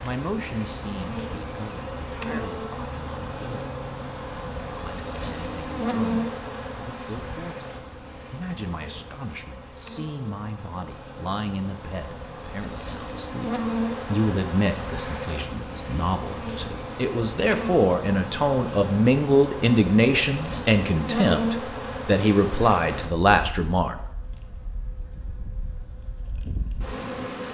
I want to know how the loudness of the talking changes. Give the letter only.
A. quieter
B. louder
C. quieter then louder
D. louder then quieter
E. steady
B.